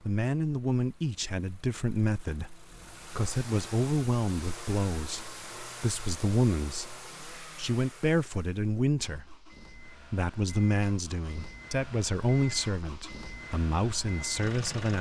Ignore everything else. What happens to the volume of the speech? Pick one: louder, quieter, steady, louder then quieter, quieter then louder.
steady.